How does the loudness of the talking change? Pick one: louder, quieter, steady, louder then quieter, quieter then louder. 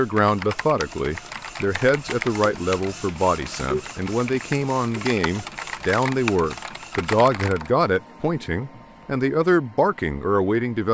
steady.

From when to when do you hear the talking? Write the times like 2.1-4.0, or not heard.
0.0-10.8.